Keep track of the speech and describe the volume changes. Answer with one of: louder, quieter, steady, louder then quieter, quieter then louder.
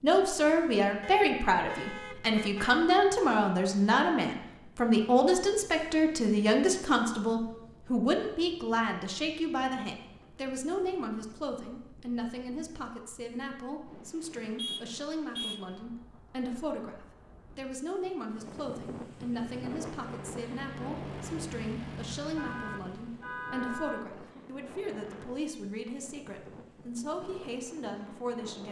quieter.